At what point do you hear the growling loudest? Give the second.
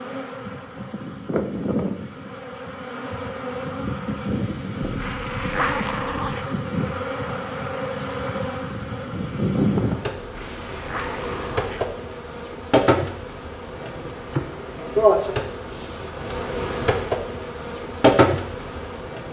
6 s.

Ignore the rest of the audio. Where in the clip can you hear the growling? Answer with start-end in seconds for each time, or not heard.
4.8-6.5, 10.2-11.9.